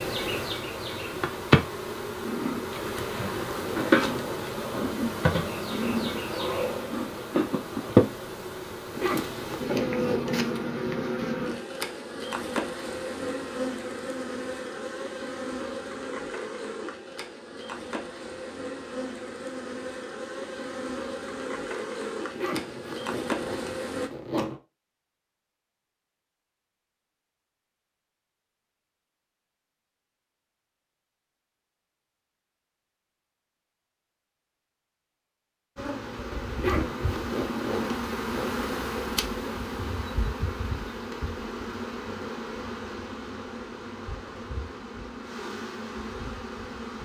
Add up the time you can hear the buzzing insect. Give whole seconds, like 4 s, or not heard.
35 s.